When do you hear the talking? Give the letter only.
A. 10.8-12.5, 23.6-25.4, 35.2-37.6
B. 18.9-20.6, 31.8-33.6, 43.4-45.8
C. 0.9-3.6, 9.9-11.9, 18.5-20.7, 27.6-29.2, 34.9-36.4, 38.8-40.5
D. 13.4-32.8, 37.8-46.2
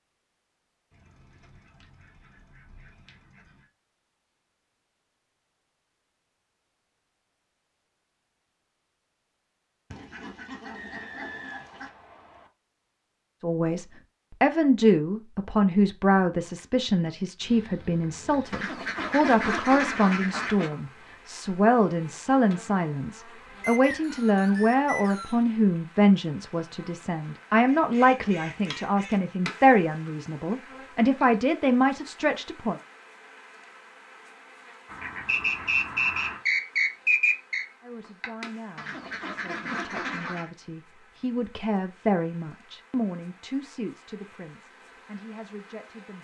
D.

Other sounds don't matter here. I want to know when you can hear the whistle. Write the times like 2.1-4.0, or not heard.
10.8-12.5, 23.6-25.4, 35.2-37.6.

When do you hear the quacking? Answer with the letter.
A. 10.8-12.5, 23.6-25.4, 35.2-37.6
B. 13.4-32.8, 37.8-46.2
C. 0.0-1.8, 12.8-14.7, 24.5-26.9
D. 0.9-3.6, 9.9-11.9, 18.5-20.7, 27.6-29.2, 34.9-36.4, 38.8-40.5
D.